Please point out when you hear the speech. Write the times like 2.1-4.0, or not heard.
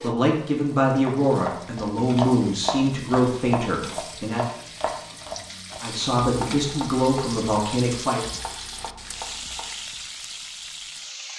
0.0-4.5, 5.8-8.2.